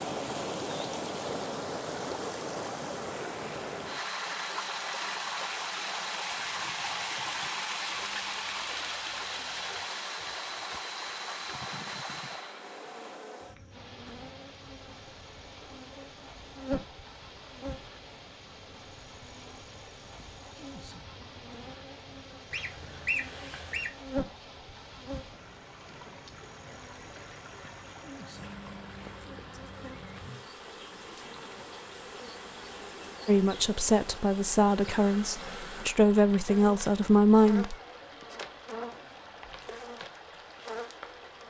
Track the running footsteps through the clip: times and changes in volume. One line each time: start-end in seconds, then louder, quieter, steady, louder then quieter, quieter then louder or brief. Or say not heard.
not heard.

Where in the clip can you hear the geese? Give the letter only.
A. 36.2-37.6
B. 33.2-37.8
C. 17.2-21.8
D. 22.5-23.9
D.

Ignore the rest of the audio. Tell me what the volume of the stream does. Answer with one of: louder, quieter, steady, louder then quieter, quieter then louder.
quieter.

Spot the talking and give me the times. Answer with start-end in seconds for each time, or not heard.
33.2-37.8.